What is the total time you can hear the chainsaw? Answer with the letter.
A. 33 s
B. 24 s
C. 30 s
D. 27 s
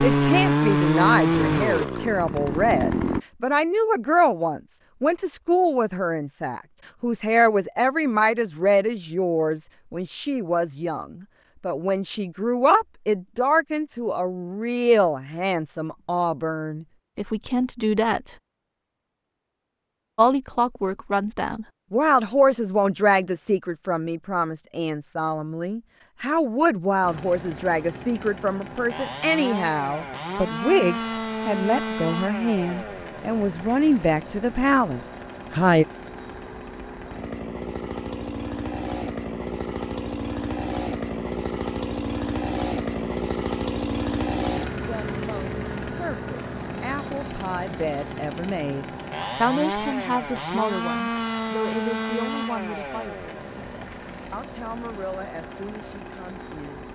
A.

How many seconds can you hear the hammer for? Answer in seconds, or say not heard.
not heard.